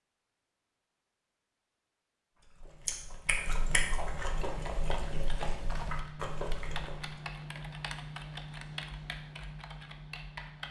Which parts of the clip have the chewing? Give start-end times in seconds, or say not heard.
2.4-7.2.